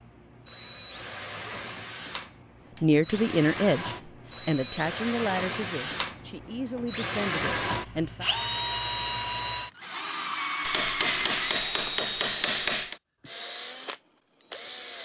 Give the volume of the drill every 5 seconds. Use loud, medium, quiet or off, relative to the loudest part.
medium, loud, loud.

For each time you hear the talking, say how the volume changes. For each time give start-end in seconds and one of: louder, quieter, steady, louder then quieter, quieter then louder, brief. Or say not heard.
2.8-8.2 quieter.